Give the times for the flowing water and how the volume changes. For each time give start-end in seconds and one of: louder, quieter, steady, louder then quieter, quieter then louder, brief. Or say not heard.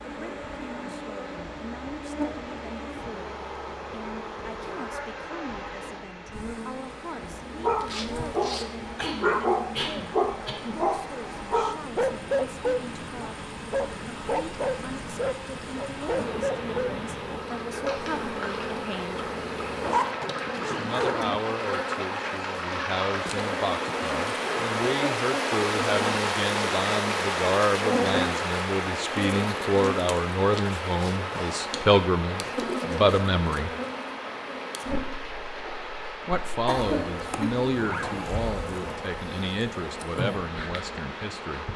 0.0-41.7 louder then quieter.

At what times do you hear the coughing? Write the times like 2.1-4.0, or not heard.
8.9-10.8, 36.6-37.7.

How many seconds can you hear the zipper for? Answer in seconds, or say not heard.
4 s.